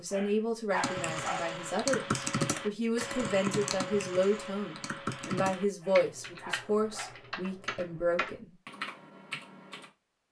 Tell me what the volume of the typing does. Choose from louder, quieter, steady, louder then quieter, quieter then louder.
quieter.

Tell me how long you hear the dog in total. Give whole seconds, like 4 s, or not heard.
3 s.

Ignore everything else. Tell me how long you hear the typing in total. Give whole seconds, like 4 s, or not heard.
9 s.